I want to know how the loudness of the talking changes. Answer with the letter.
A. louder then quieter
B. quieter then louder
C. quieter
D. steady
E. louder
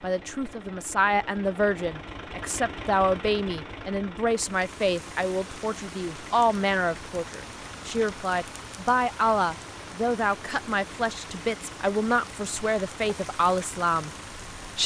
D.